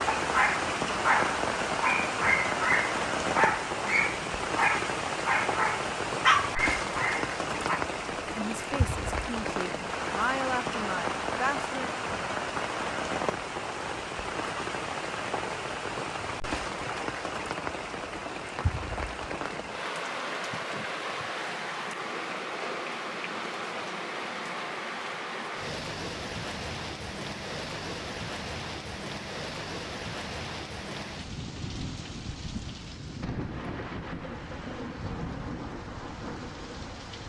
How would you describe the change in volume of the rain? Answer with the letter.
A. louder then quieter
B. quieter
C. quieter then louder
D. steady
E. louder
B.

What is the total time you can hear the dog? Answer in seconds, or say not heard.
8 s.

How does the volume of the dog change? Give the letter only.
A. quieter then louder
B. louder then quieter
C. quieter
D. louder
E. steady
E.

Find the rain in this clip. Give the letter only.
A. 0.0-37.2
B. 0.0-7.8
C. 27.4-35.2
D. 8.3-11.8
A.